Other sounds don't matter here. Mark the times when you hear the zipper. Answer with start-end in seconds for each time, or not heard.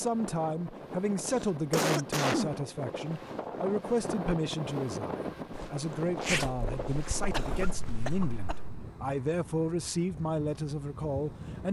5.5-8.2.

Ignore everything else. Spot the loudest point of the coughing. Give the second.
2 s.